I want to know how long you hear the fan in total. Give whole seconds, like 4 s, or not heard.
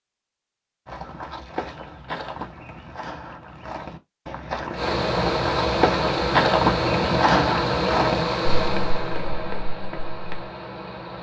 6 s.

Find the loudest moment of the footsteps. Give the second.
7 s.